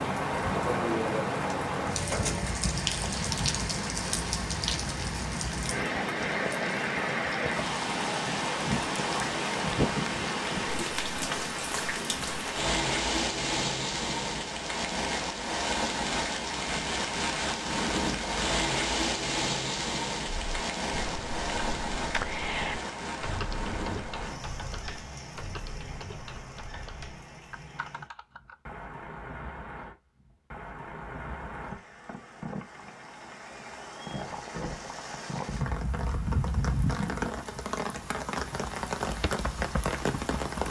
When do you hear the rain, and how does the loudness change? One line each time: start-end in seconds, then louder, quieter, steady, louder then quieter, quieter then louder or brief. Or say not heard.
0.0-40.6 quieter then louder.